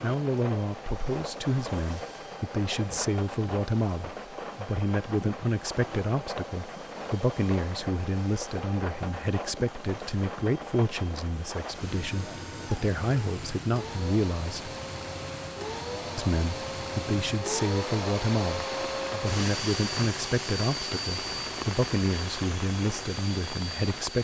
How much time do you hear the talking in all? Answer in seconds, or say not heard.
23 s.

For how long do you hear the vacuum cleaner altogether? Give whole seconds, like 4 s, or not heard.
24 s.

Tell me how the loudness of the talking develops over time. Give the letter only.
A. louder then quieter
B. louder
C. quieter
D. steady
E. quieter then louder
D.